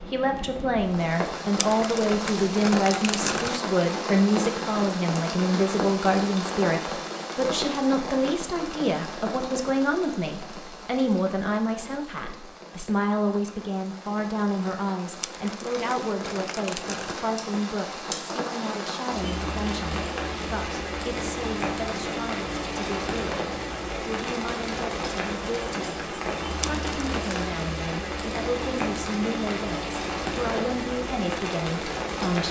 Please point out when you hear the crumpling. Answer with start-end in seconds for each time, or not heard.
1.6-3.6, 15.2-17.2, 26.6-27.5.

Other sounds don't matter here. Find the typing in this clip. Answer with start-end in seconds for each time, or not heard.
not heard.